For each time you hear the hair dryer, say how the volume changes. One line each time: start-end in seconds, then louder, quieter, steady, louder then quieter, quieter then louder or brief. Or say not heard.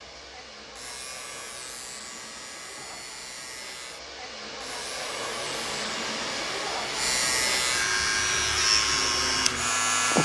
0.0-10.1 louder.